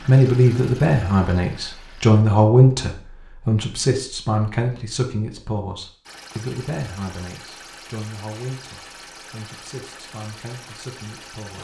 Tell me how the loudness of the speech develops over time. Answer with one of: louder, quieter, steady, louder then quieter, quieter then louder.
quieter.